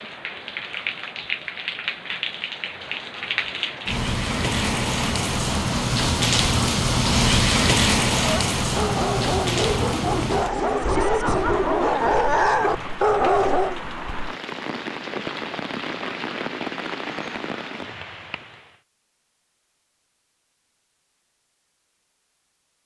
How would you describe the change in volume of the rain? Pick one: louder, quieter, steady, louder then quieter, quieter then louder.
louder then quieter.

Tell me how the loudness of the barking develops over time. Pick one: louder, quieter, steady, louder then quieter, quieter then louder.
louder.